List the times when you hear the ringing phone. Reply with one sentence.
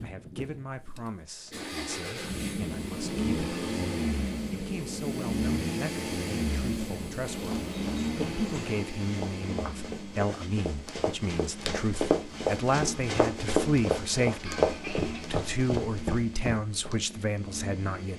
The ringing phone can't be heard in this clip.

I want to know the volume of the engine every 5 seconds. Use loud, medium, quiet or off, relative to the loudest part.
loud, loud, medium, medium.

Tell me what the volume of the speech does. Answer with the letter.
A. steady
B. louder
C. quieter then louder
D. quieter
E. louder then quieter
B.